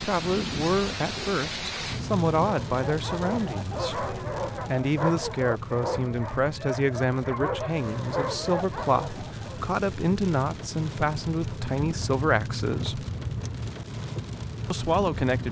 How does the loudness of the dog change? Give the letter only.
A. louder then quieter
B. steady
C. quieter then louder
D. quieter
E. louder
B.